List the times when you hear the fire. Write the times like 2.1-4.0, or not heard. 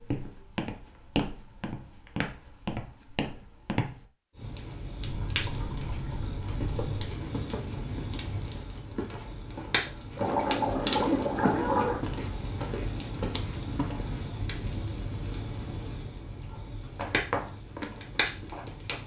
4.3-19.0.